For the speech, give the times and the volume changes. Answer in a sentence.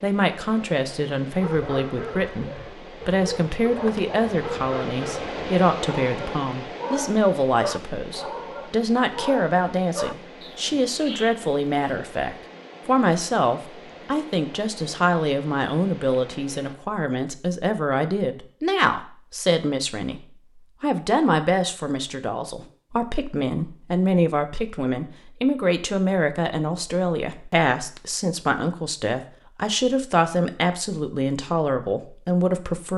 The speech can be heard from 0.0 to 32.9 s, at a steady volume.